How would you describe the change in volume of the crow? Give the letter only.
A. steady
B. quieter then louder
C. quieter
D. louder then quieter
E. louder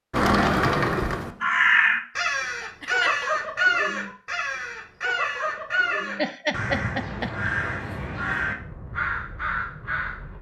C.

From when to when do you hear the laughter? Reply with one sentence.
The laughter can be heard from 2.6 to 3.3 s and from 6.0 to 7.5 s.